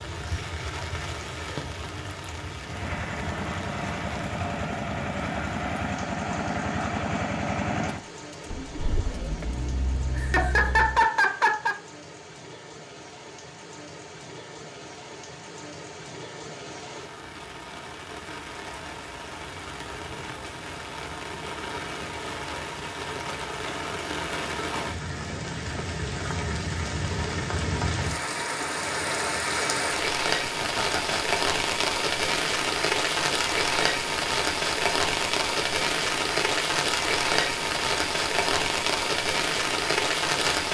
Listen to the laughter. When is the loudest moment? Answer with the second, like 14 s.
11 s.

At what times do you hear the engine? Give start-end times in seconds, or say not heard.
2.6-11.1.